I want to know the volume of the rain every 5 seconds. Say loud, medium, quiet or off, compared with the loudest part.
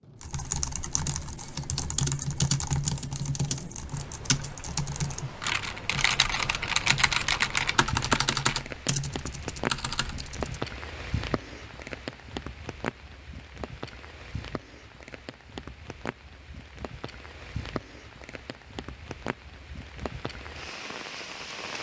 medium, loud, loud, medium, loud.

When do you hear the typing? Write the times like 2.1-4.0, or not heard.
0.2-10.6.